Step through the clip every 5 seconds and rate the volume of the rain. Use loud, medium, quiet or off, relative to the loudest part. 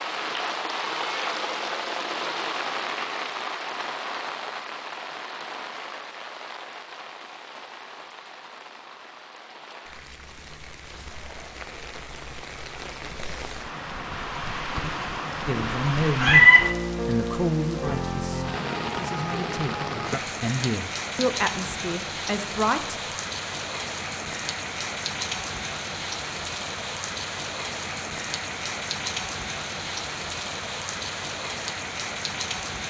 loud, medium, medium, loud, loud, loud, loud.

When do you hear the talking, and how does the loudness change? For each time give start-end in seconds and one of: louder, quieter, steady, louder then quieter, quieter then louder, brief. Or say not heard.
15.4-22.9 quieter then louder.